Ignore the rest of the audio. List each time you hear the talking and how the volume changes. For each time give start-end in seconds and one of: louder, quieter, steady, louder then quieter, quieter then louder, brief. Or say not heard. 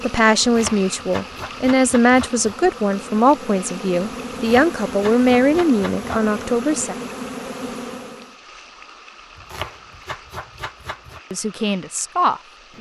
0.0-7.0 steady
11.3-12.7 brief.